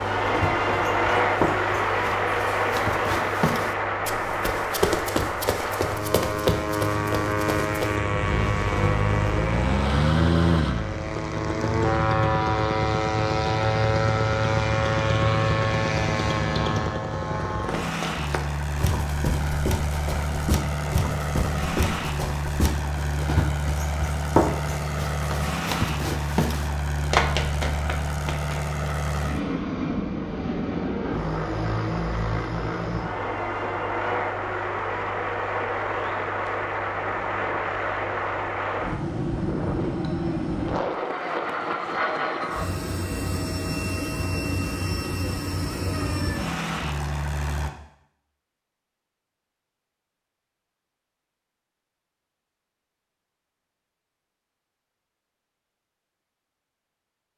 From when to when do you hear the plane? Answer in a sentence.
The plane can be heard from 0.0 to 47.7 s.